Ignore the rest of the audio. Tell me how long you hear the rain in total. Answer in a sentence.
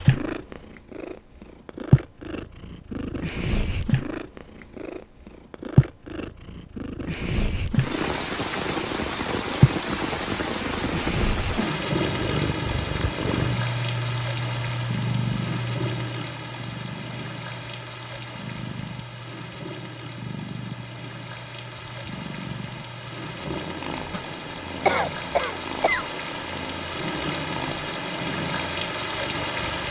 You can hear the rain for 22 seconds altogether.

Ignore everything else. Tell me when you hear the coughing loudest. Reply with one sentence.
The loudest moment of the coughing is at 25 seconds.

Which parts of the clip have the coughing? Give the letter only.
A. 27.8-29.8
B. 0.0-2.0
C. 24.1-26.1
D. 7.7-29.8
C.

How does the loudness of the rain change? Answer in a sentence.
The loudness of the rain goes down, then up.